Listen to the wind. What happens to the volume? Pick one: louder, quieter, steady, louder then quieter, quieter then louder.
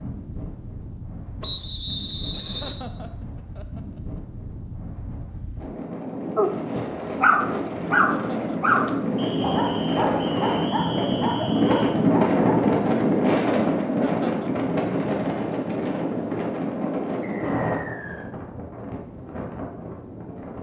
louder then quieter.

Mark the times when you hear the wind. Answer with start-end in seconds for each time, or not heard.
0.0-20.5.